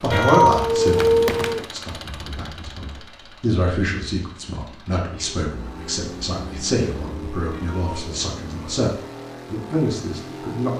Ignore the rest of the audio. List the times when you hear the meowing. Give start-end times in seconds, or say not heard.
0.1-1.6, 7.5-8.1.